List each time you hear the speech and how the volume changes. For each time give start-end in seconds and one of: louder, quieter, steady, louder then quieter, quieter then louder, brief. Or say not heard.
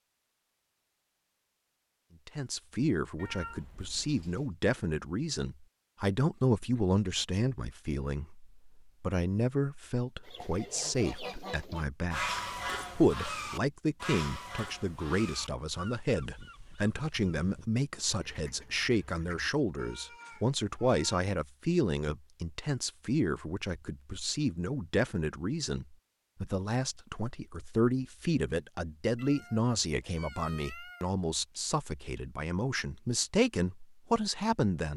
2.2-34.9 steady.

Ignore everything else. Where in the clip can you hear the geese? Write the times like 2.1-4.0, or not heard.
10.2-19.5.